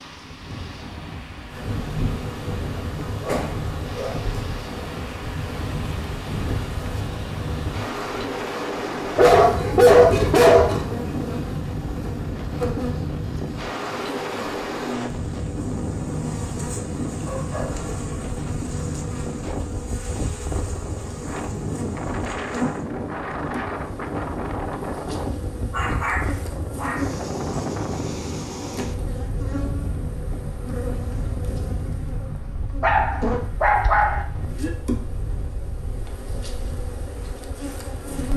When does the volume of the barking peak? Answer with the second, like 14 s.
10 s.